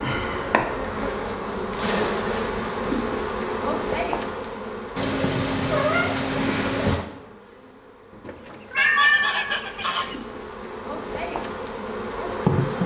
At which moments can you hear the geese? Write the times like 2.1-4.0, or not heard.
8.2-10.2.